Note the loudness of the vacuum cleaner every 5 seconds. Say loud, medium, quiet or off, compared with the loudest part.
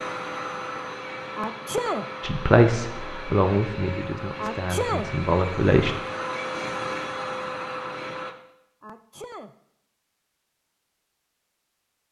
loud, loud, off.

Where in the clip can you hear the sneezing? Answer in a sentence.
The sneezing can be heard from 1.4 to 2.1 s, from 4.3 to 5.1 s and from 8.8 to 9.6 s.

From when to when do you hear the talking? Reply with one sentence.
The talking can be heard from 2.2 to 6.0 s.